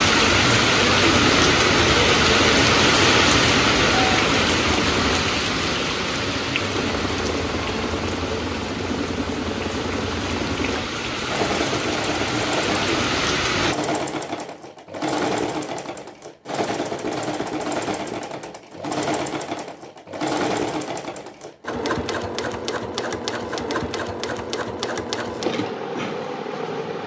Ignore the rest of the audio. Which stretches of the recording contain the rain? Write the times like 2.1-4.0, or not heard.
0.0-13.8.